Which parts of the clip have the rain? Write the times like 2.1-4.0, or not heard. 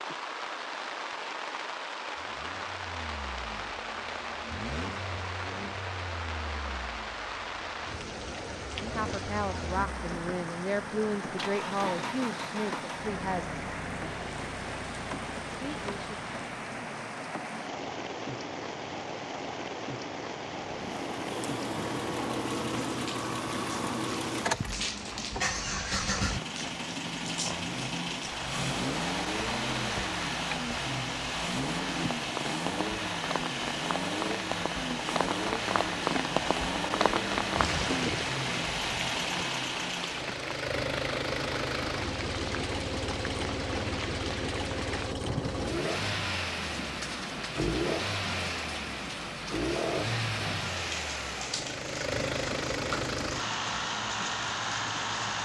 0.0-55.4.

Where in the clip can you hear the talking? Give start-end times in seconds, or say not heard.
8.8-13.5, 15.4-16.1.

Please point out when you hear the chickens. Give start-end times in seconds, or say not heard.
not heard.